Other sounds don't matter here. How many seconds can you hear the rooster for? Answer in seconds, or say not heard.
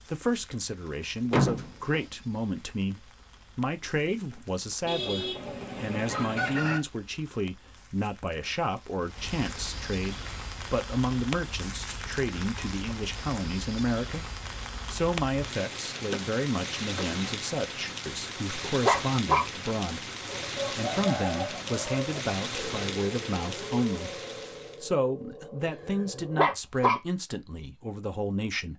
4 s.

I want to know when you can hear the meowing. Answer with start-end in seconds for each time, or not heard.
not heard.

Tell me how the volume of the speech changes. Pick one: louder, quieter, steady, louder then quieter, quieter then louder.
steady.